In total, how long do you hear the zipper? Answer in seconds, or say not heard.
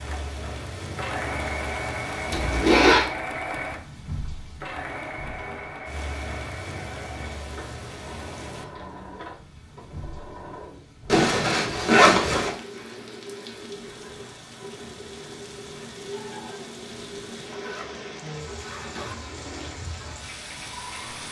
4 s.